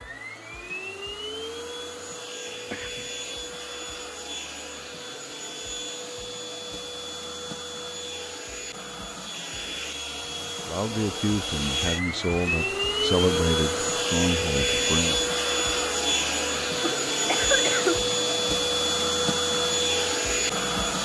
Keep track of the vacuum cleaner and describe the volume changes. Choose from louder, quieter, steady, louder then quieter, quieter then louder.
louder.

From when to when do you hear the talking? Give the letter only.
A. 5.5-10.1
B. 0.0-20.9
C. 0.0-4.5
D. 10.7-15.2
D.